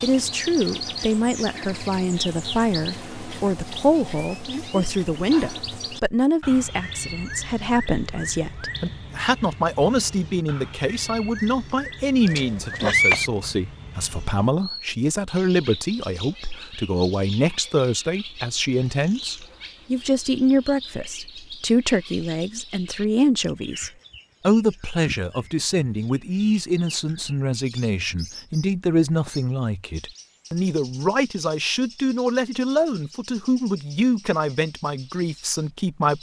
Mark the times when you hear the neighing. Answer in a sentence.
You can hear the neighing from 12.2 to 13.3 s.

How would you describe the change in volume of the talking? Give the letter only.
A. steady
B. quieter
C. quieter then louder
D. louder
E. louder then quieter
A.